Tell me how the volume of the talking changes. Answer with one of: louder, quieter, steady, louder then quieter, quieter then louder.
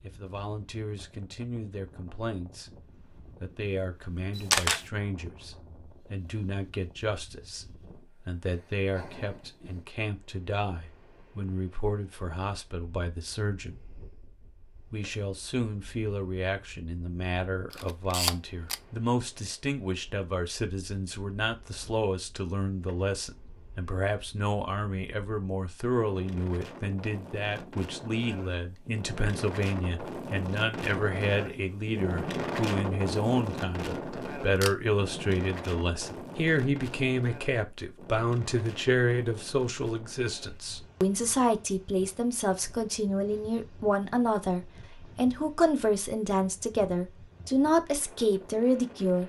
louder.